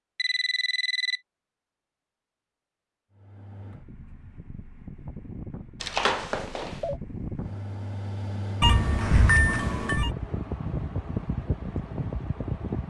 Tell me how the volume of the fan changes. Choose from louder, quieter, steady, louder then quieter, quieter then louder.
louder.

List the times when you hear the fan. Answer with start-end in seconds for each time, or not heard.
3.1-12.8.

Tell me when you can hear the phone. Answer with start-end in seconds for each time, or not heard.
0.1-1.2, 5.8-7.0, 8.6-10.1.